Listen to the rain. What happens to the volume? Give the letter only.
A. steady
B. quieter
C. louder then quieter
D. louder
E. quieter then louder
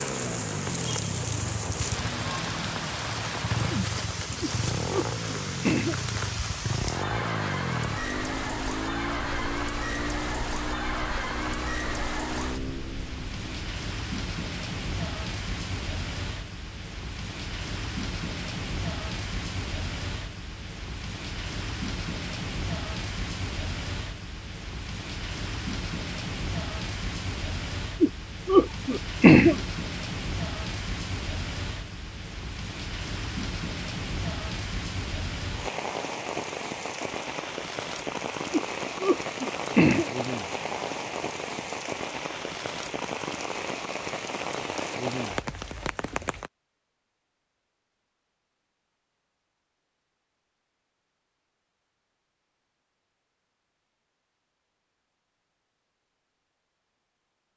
A.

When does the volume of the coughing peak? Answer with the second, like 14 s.
29 s.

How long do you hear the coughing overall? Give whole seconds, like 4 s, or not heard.
5 s.